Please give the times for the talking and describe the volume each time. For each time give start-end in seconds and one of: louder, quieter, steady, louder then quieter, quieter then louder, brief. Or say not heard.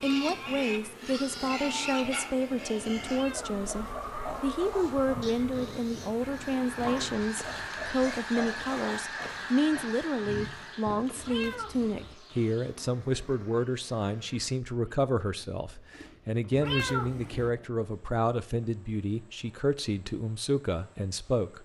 0.0-21.6 steady.